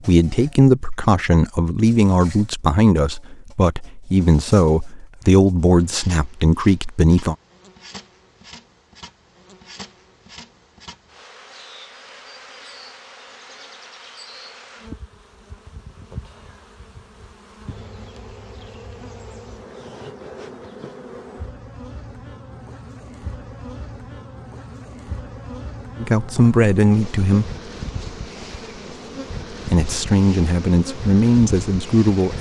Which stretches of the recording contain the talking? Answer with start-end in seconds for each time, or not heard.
0.1-7.3, 26.0-27.5, 29.6-32.3.